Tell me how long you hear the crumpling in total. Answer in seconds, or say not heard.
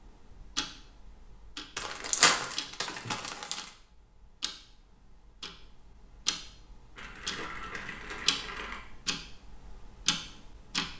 4 s.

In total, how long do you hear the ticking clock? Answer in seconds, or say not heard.
11 s.